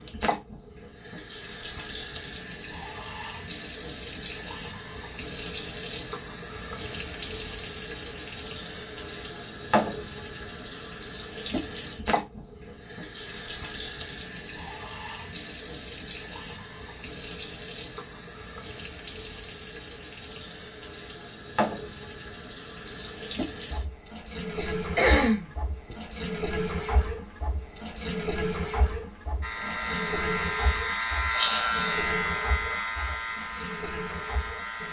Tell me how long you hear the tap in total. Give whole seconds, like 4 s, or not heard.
35 s.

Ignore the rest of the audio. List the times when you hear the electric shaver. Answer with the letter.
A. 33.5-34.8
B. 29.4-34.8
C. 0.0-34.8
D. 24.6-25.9
B.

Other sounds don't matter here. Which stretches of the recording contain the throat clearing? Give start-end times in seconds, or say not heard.
24.6-25.9.